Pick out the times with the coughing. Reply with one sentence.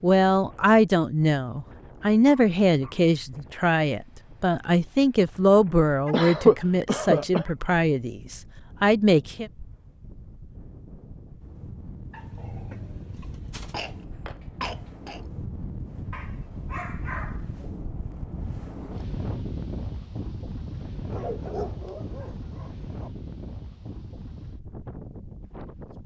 You can hear the coughing from 6.1 to 7.5 s and from 13.6 to 15.2 s.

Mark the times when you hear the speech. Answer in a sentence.
The speech can be heard from 0.0 to 9.5 s.